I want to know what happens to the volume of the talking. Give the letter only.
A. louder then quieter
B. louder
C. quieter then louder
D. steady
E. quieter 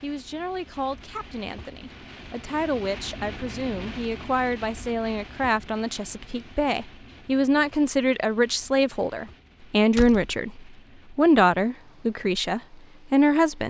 B.